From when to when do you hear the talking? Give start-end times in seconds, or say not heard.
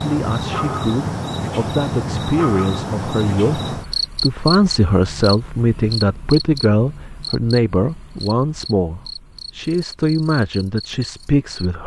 0.0-11.8.